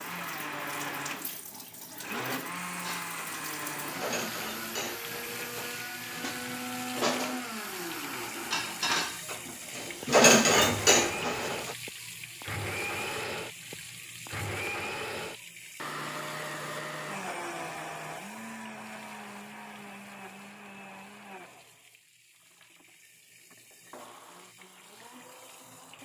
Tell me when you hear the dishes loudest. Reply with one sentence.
The volume of the dishes peaks at 10 seconds.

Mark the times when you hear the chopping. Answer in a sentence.
You can't hear the chopping here.